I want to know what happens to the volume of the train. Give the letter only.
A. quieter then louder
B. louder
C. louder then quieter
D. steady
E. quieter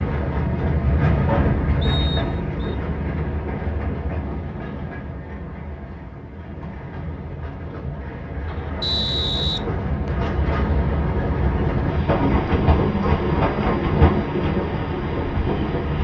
A.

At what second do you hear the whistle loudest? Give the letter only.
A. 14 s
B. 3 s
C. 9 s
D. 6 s
C.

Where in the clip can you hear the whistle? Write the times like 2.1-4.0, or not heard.
1.8-2.8, 8.8-10.3.